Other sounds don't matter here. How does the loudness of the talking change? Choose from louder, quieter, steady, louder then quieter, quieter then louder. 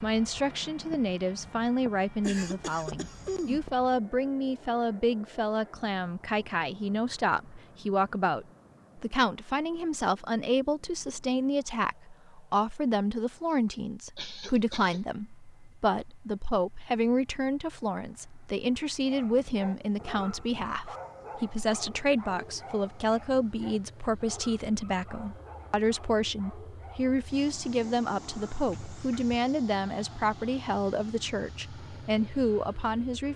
steady.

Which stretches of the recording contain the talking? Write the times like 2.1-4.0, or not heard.
0.0-33.3.